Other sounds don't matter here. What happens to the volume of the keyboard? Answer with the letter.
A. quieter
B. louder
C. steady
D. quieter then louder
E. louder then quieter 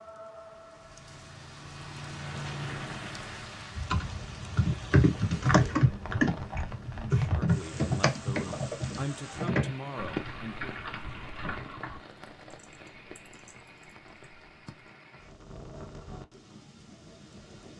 A.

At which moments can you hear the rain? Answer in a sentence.
You can hear the rain from 0.0 to 17.7 s.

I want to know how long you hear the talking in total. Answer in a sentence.
You can hear the talking for 4 seconds altogether.